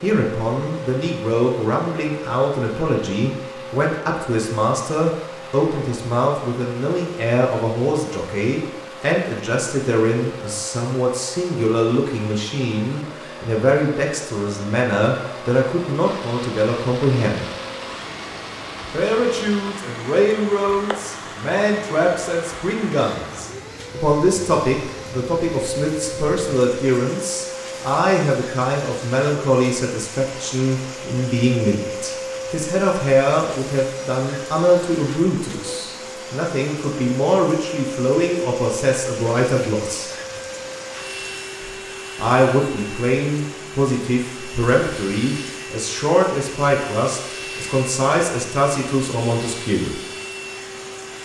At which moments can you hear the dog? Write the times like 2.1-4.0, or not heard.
not heard.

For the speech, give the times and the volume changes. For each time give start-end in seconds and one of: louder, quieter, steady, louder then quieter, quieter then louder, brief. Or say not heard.
0.0-17.4 steady
18.9-40.1 steady
42.1-50.0 steady.